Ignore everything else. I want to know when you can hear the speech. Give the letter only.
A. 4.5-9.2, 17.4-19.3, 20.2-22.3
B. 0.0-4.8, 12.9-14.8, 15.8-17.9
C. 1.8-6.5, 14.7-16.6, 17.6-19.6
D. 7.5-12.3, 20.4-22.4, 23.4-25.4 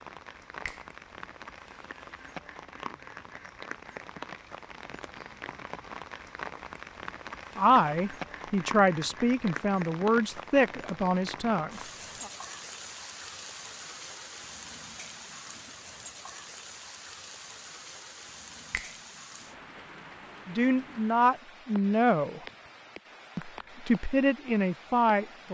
D.